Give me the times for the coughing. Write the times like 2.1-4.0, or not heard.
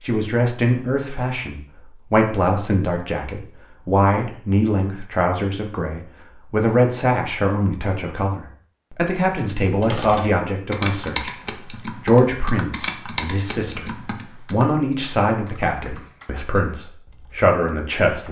not heard.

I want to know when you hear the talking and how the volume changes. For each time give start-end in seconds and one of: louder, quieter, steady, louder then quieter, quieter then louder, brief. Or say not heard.
0.0-18.2 steady.